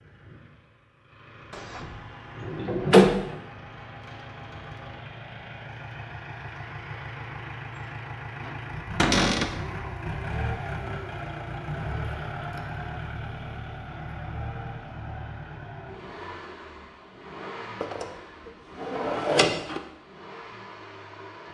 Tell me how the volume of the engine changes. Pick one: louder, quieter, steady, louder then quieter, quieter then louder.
louder then quieter.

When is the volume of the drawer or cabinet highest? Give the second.
3 s.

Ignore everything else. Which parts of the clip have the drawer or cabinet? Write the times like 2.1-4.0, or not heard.
1.5-3.4, 8.9-9.6, 17.8-19.8.